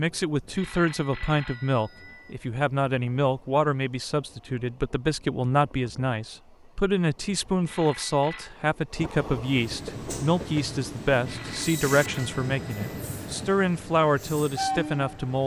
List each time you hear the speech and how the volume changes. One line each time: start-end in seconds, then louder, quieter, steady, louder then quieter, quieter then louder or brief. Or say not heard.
0.0-15.4 steady.